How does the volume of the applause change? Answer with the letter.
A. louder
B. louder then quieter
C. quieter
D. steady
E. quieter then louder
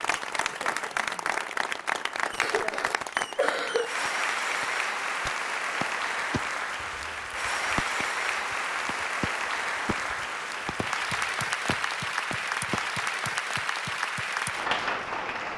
D.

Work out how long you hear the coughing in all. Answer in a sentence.
The coughing can be heard for 2 seconds in total.